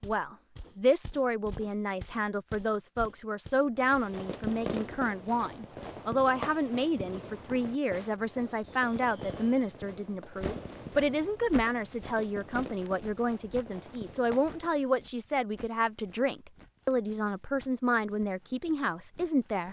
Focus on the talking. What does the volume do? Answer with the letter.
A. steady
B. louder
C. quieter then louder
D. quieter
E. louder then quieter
A.